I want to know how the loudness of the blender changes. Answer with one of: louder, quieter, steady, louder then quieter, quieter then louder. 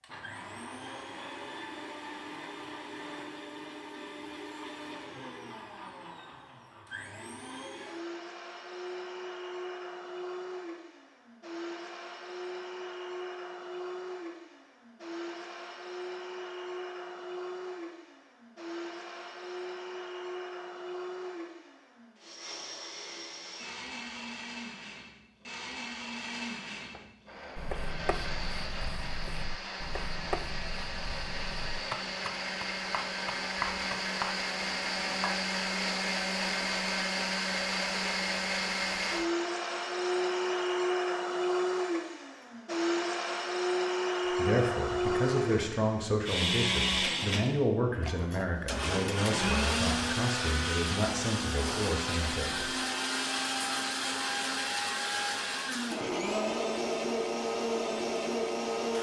louder.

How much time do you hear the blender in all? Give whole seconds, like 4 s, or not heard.
59 s.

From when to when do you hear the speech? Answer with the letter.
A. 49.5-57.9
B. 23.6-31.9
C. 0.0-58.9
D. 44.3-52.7
D.